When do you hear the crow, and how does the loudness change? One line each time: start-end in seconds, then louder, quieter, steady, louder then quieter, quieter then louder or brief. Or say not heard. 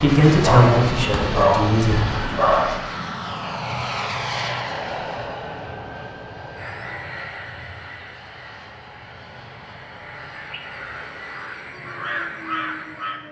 6.5-13.2 quieter then louder.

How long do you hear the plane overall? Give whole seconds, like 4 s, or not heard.
13 s.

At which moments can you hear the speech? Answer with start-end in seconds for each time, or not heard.
0.0-2.2.